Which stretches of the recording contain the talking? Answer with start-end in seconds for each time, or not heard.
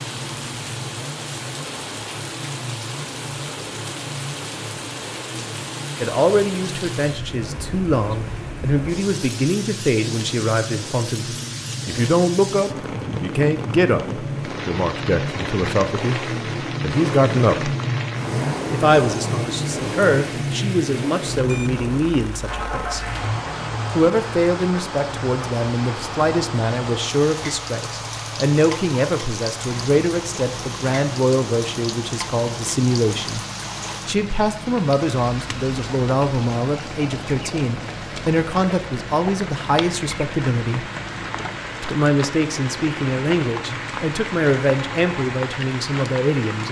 6.0-17.8, 18.7-23.1, 23.9-33.4, 34.0-40.9, 41.8-46.6.